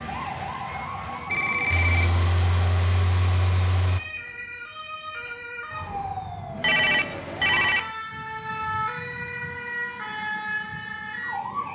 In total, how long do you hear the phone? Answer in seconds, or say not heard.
2 s.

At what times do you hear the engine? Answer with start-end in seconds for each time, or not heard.
1.7-4.0.